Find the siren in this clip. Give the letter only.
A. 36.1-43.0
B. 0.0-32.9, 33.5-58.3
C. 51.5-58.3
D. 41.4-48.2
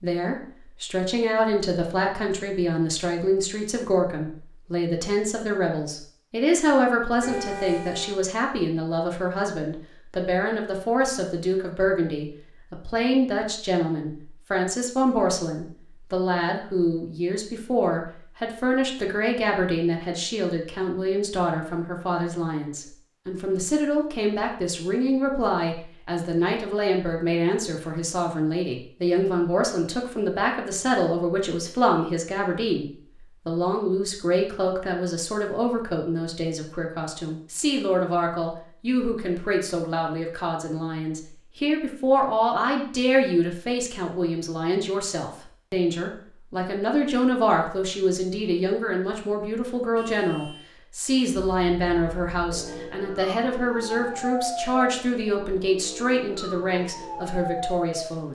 C.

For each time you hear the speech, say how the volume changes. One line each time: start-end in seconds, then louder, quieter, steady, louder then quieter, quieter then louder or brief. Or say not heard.
0.0-32.9 steady
33.5-58.3 steady.